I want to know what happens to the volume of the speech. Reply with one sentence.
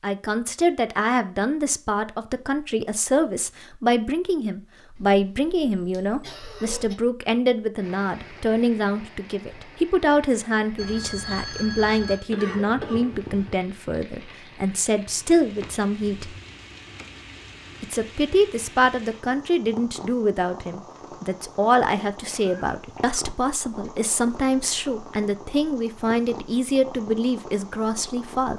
The loudness of the speech stays about the same.